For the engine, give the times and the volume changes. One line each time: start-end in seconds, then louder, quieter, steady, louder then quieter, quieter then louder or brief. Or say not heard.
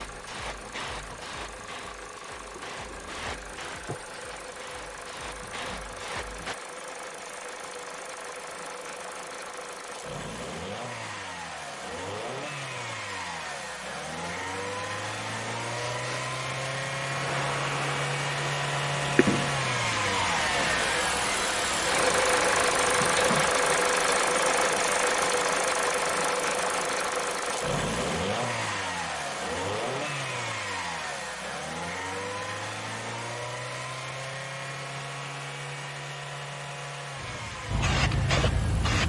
0.0-39.0 louder then quieter.